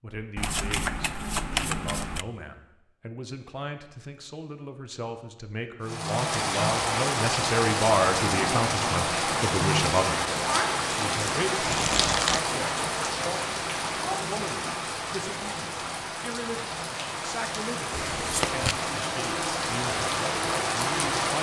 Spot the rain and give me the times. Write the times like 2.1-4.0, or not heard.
5.8-21.3.